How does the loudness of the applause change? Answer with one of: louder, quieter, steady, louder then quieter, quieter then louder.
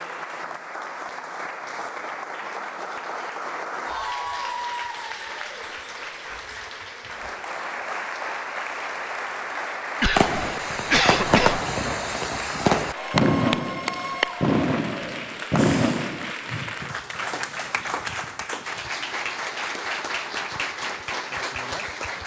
steady.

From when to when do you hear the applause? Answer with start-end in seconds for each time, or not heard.
0.0-22.2.